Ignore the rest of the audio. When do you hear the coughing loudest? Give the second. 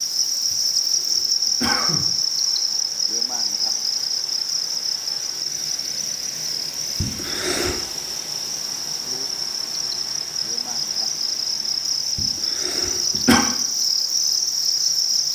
13 s.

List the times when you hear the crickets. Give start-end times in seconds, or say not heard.
0.0-15.3.